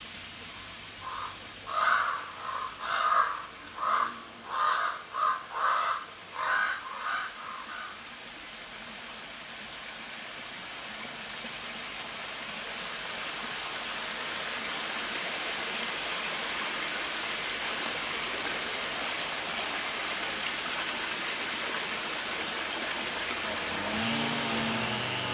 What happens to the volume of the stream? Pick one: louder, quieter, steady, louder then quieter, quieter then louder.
louder.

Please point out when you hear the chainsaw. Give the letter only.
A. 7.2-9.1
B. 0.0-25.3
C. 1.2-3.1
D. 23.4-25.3
D.